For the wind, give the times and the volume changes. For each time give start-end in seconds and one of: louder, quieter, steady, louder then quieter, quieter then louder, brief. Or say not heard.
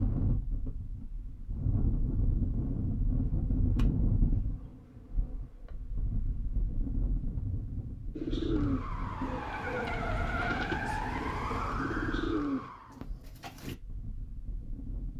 0.0-15.1 quieter.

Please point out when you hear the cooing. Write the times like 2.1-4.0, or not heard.
8.2-13.8.